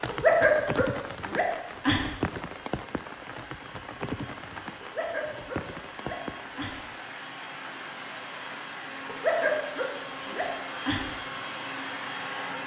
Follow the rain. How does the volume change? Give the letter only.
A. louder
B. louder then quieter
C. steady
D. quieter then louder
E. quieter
E.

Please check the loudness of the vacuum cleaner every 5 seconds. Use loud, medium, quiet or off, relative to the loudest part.
medium, medium, loud.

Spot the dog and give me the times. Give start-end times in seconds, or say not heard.
0.1-2.0, 4.8-6.8, 9.1-11.1.